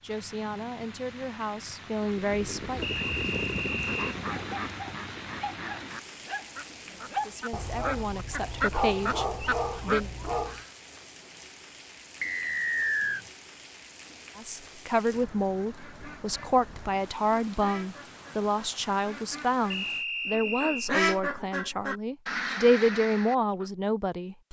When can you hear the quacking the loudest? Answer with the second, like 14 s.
21 s.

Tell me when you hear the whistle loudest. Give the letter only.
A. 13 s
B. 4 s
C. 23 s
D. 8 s
A.